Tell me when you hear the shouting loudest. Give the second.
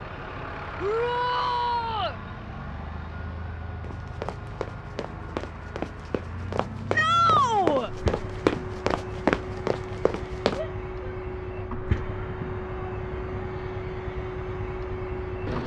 7 s.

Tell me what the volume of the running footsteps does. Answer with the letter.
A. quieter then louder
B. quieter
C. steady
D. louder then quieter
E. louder
E.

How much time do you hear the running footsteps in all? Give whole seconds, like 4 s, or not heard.
7 s.